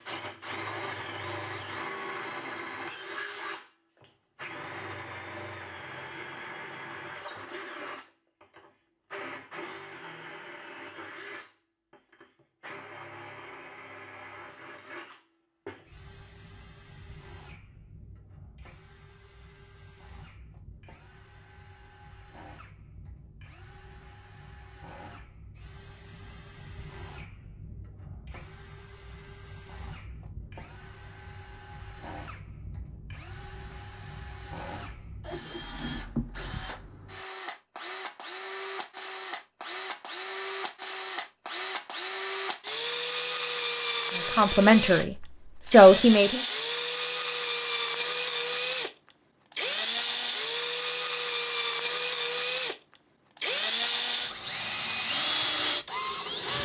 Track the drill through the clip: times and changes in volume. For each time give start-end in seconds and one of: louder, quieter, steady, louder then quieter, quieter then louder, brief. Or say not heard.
0.0-56.6 quieter then louder.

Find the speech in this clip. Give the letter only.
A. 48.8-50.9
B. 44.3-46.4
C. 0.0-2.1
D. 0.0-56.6
B.